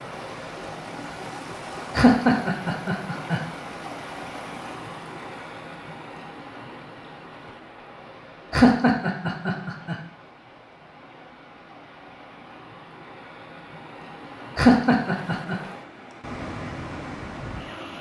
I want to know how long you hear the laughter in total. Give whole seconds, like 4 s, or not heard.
4 s.